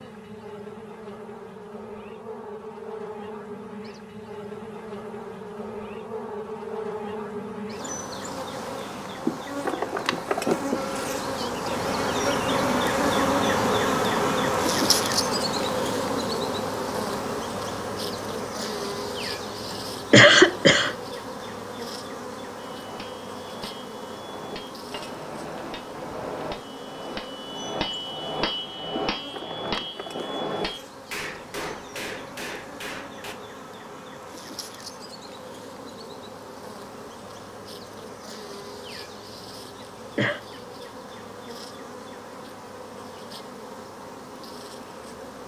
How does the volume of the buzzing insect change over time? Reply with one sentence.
The volume of the buzzing insect goes up, then down.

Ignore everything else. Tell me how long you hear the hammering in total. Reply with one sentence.
You can hear the hammering for 11 seconds altogether.